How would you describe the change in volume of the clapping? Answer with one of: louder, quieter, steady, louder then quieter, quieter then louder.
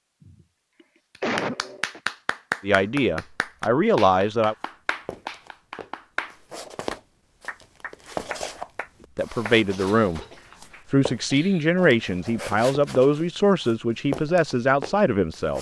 quieter.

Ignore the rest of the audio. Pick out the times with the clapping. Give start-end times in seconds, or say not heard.
1.1-10.8.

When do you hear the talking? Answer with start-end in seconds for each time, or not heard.
2.6-4.5, 9.2-10.2, 10.9-15.5.